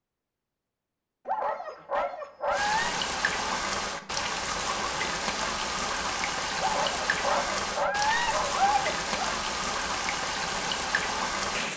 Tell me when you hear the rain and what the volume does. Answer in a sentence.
The rain can be heard from 2.5 to 11.7 s, at a steady volume.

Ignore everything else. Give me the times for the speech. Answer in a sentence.
You can't hear the speech here.